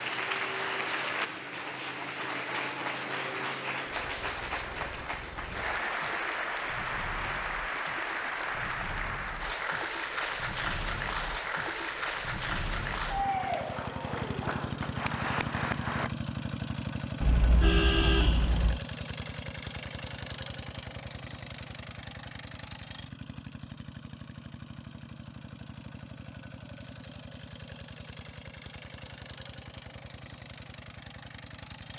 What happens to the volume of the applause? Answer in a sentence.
The loudness of the applause stays about the same.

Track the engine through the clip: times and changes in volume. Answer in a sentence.
The engine can be heard from 0.0 to 31.9 s, getting louder then quieter.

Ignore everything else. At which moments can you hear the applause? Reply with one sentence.
You can hear the applause from 0.0 to 16.1 s.